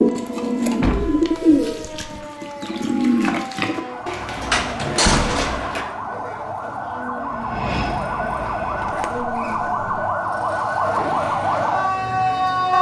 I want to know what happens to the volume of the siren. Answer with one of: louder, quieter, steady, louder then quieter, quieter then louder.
louder.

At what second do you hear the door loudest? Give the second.
5 s.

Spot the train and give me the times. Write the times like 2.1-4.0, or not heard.
7.2-9.2.